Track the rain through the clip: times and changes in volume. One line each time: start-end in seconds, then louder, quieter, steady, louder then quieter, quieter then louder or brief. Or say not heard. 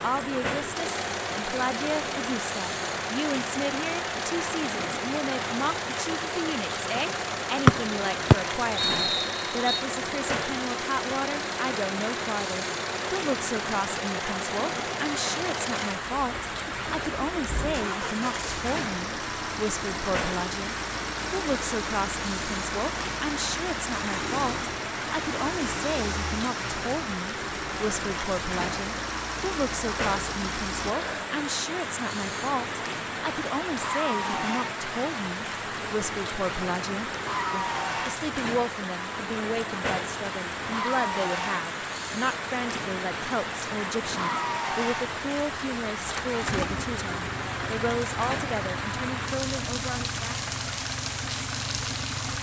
0.0-52.3 steady.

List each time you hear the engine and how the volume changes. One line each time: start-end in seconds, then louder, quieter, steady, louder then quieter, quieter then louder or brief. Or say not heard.
0.0-52.3 steady.